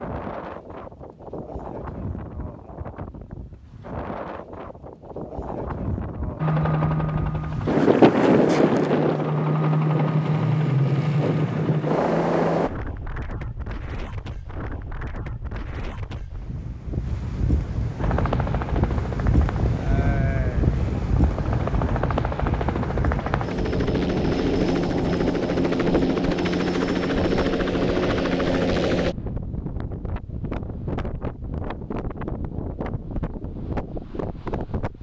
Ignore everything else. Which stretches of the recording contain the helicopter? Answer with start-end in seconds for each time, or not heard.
6.3-12.7, 17.9-29.1.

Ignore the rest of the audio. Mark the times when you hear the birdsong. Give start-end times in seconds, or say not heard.
not heard.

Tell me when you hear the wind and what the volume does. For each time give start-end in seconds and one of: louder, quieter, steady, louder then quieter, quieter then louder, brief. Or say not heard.
0.0-34.9 louder then quieter.